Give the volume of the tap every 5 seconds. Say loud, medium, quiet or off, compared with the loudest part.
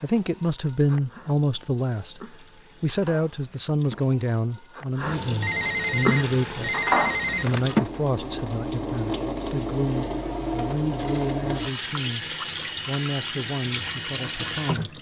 quiet, loud, loud.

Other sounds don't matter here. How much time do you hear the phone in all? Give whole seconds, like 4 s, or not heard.
2 s.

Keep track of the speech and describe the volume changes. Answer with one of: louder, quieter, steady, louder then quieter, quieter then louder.
quieter.